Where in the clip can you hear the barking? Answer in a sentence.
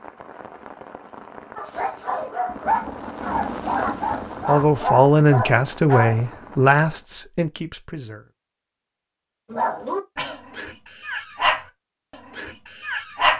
The barking can be heard from 1.6 to 6.2 s and from 9.5 to 13.3 s.